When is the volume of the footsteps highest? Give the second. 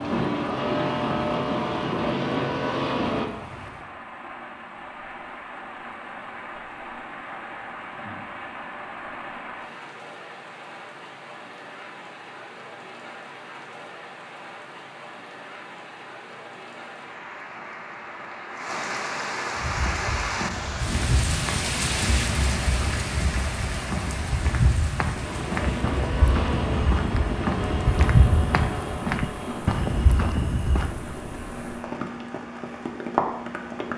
28 s.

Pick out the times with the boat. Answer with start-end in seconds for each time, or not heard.
0.0-3.3, 25.2-33.9.